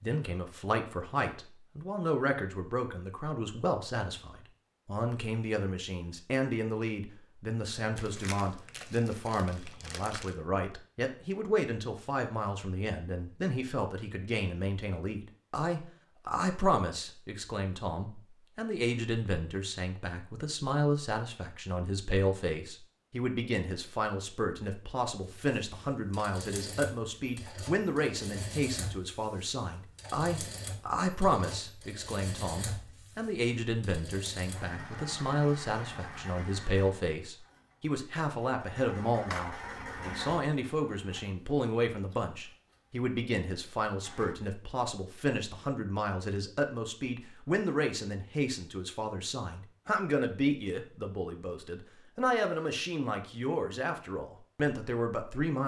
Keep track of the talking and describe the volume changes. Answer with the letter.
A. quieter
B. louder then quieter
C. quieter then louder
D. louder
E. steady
E.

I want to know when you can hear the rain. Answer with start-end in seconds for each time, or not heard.
not heard.